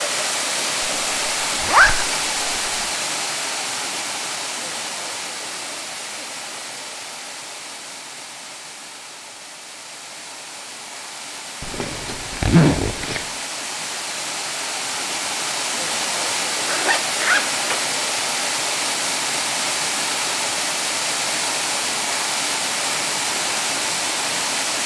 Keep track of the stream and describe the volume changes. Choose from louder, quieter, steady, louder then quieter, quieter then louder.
quieter then louder.